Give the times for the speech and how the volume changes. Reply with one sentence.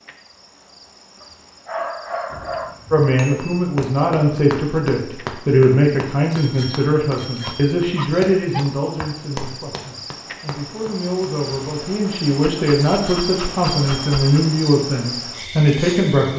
You can hear the speech from 2.9 to 16.3 s, getting quieter then louder.